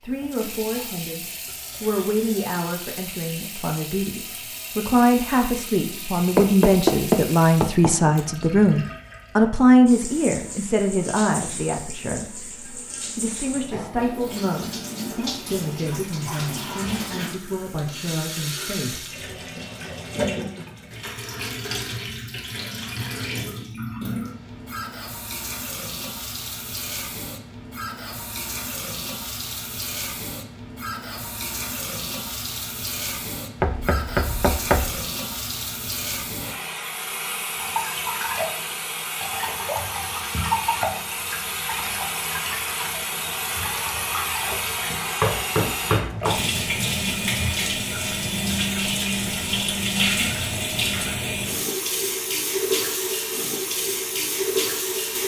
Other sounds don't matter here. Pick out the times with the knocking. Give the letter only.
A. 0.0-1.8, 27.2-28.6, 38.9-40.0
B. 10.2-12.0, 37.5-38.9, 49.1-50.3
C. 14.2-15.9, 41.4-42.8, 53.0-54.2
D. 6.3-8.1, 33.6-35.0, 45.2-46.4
D.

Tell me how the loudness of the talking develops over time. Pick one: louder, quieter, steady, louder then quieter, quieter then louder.
louder then quieter.